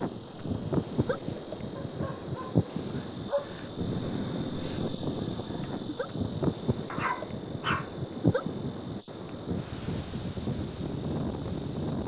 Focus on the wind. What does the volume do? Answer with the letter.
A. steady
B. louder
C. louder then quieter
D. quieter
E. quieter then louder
A.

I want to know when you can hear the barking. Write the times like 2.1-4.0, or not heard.
1.8-3.7, 6.8-8.0.